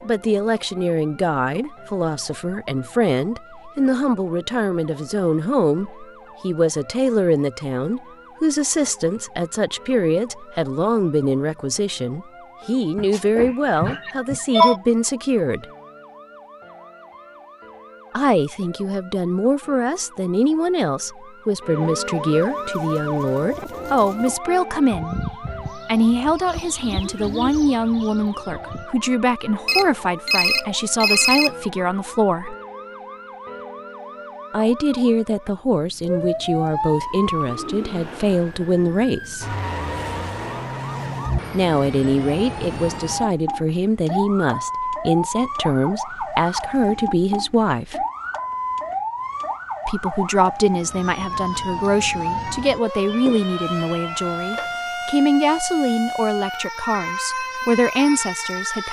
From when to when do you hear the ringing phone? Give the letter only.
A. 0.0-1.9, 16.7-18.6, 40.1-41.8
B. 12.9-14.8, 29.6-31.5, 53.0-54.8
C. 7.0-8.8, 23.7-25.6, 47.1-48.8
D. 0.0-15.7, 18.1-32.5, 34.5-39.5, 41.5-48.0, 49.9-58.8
B.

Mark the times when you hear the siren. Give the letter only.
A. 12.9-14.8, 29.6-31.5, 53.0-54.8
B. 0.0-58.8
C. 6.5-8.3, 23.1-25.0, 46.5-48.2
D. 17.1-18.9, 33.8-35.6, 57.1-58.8
B.